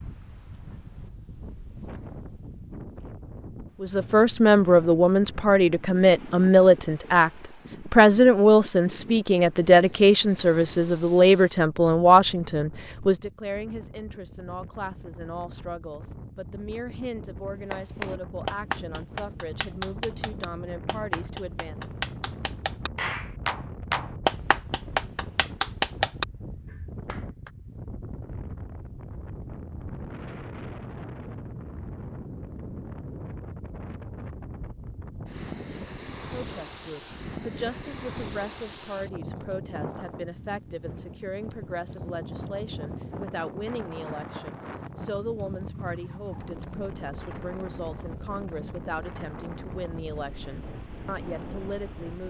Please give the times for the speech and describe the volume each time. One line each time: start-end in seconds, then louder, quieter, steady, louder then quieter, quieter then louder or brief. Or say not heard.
3.8-21.8 quieter
36.1-52.2 steady.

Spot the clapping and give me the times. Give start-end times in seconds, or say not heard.
17.7-27.5.